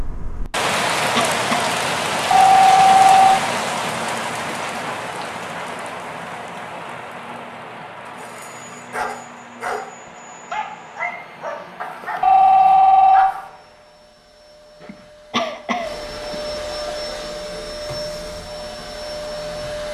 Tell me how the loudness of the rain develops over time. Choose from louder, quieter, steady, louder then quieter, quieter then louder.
quieter.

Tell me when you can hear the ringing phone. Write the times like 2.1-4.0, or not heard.
2.3-3.3, 12.2-13.2.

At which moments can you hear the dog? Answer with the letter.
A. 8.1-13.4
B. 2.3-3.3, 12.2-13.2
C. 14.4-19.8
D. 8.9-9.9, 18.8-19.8
A.